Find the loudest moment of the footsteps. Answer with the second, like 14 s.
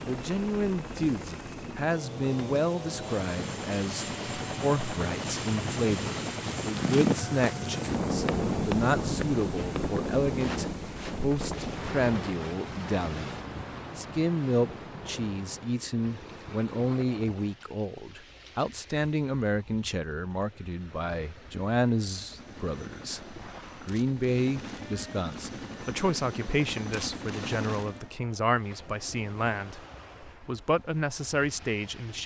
7 s.